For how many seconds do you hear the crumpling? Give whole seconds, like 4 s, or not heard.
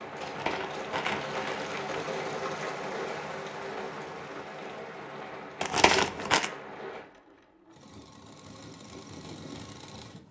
3 s.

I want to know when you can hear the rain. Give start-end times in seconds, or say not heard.
0.0-7.1.